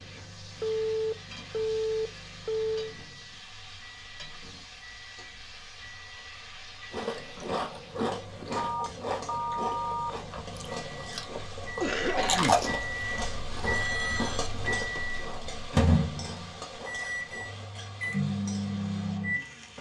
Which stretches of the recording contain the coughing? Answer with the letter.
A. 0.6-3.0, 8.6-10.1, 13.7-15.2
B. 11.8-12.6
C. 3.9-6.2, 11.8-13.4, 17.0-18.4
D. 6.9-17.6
B.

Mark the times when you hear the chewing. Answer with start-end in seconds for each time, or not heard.
6.9-17.6.